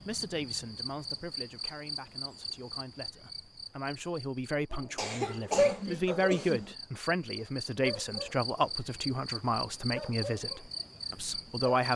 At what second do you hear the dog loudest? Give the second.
6 s.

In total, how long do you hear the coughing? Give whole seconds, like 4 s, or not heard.
2 s.